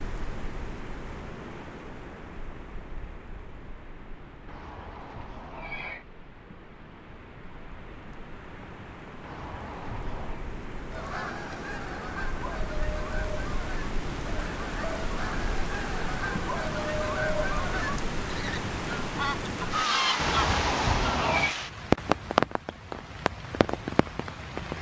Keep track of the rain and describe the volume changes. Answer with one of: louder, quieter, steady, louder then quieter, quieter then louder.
louder.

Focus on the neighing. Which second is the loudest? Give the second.
21 s.